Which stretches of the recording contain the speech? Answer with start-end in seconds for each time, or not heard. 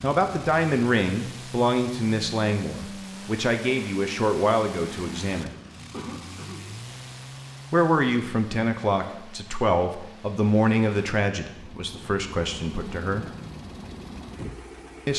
0.0-5.5, 7.7-13.2.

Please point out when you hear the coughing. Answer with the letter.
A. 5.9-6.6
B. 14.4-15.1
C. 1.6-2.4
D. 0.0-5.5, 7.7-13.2
A.